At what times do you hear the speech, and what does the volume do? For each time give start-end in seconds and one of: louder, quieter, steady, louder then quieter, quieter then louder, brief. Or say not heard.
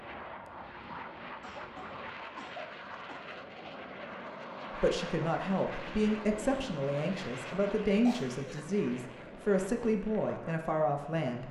4.7-11.4 steady.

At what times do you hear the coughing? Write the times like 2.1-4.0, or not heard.
1.4-3.3, 8.1-8.8.